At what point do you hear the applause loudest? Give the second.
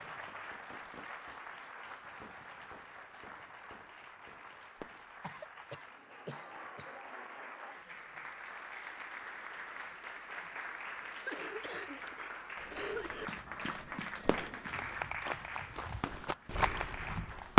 15 s.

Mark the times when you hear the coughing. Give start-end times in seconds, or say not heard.
5.2-7.0, 11.2-13.3.